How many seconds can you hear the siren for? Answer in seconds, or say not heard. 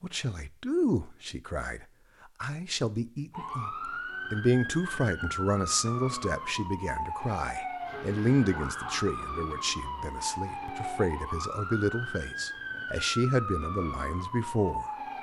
12 s.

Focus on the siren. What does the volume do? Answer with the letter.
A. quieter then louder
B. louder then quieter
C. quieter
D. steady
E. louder
D.